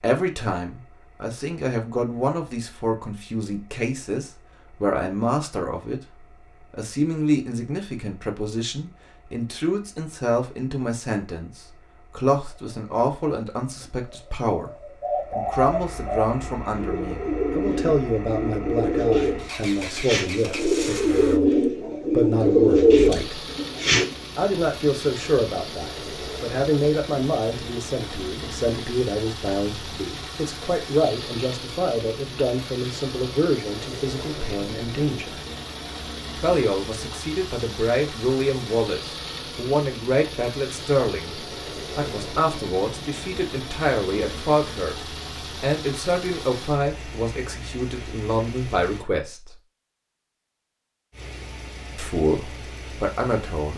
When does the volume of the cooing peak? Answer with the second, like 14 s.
23 s.